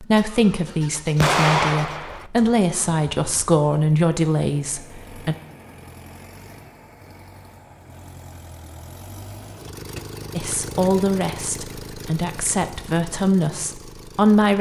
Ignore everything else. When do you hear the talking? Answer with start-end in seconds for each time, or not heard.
0.0-5.3, 10.3-14.5.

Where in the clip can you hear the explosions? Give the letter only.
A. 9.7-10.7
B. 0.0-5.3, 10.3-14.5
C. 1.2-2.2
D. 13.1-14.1
C.